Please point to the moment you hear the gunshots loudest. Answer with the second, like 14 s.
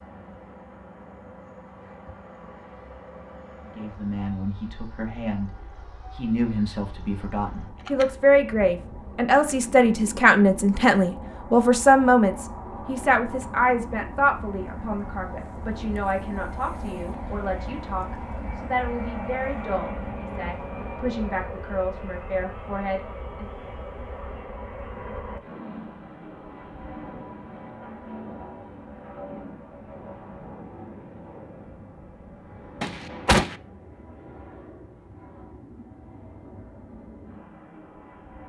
33 s.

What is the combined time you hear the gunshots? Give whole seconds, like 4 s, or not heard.
2 s.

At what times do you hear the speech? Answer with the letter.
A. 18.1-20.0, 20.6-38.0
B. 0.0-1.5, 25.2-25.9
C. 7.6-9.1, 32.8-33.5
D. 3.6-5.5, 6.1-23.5
D.